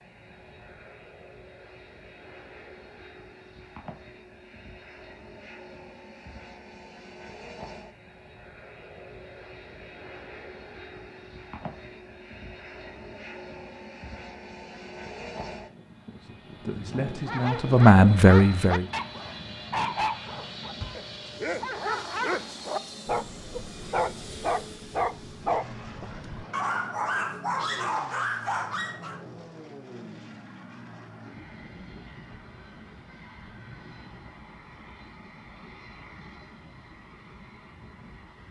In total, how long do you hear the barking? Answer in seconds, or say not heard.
12 s.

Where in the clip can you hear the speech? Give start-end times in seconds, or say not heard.
16.6-18.9.